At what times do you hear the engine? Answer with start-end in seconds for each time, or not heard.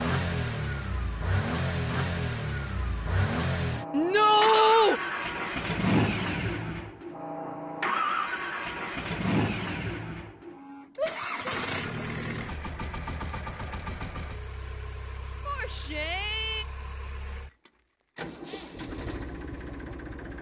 0.0-20.3.